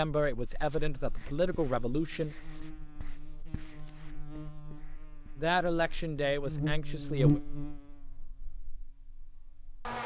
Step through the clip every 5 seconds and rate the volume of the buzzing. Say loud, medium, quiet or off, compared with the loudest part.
quiet, loud.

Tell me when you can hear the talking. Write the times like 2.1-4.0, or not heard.
0.0-2.4, 5.3-7.4.